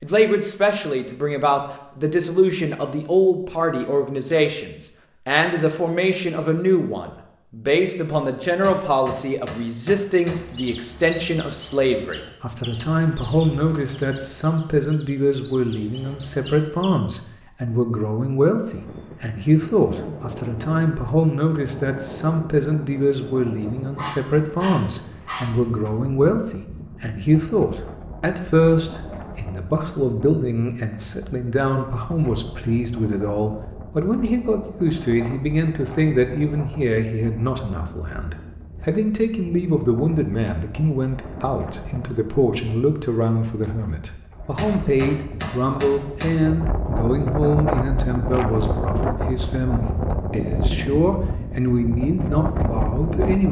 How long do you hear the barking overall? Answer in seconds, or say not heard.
2 s.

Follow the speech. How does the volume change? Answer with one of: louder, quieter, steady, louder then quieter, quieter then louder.
steady.